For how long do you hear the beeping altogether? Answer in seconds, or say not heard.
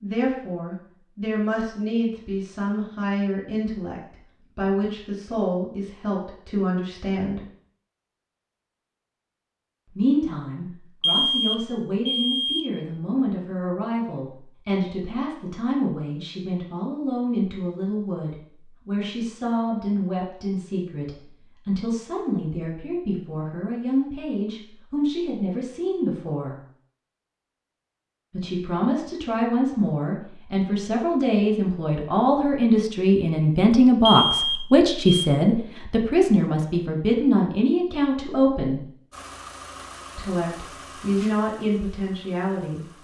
3 s.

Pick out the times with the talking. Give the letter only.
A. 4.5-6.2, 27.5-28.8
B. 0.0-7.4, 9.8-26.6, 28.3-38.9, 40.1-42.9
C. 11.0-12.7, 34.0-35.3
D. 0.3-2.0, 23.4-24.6
B.